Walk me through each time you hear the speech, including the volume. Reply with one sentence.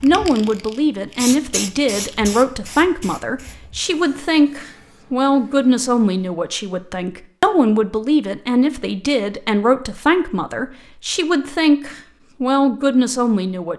The speech can be heard from 0.0 to 13.7 s, at a steady volume.